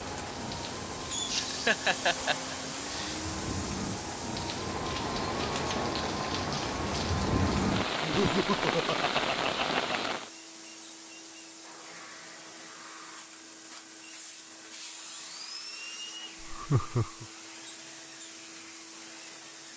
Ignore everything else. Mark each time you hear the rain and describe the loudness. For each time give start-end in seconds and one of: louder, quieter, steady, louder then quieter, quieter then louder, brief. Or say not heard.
0.0-10.3 louder.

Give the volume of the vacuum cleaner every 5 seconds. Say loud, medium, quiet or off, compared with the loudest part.
loud, medium, medium, medium.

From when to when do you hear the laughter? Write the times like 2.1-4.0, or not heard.
1.2-3.1, 8.0-10.2, 16.4-17.2.